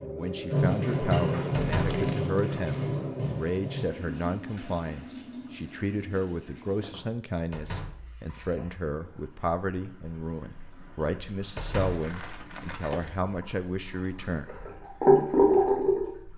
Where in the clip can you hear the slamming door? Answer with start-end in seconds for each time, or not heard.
1.6-2.0, 7.5-8.1, 11.6-12.1.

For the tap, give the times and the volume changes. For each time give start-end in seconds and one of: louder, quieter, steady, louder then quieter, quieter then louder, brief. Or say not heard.
0.0-16.3 quieter then louder.